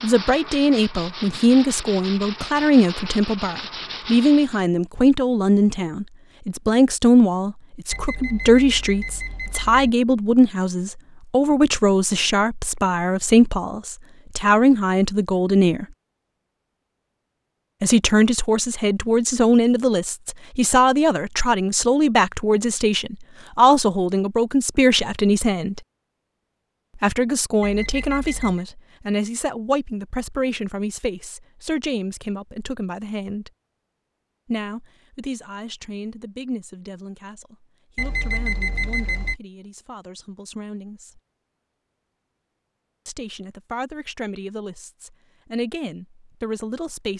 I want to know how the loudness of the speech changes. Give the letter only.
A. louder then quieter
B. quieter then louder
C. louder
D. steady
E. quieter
E.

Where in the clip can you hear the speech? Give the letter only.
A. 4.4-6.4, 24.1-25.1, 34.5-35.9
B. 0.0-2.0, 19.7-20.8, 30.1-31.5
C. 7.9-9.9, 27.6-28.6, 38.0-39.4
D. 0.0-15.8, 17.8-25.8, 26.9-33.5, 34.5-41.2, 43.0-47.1
D.